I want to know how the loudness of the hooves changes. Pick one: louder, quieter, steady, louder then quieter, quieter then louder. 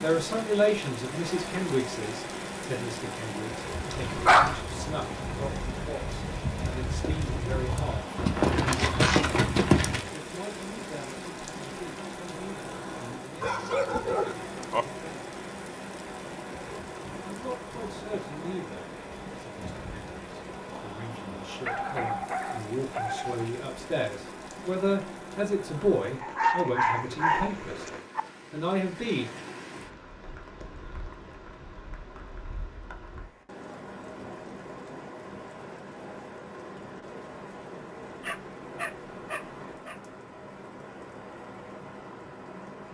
louder.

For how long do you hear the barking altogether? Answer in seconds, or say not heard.
8 s.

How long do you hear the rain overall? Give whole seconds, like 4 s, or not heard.
43 s.